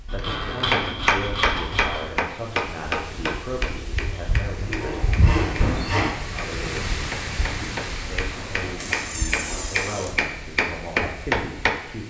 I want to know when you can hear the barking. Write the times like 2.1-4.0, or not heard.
not heard.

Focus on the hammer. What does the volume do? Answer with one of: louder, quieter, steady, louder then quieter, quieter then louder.
quieter then louder.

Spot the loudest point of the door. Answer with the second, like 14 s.
6 s.